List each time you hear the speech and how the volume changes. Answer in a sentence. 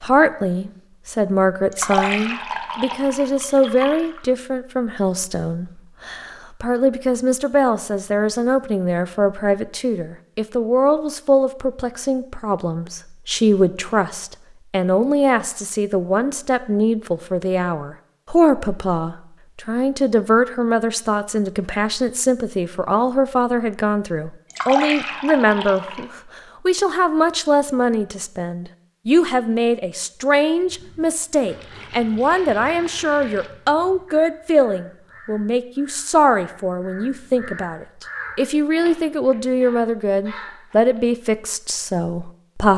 The speech can be heard from 0.0 to 42.7 s, at a steady volume.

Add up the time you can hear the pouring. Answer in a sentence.
The pouring can be heard for 6 seconds in total.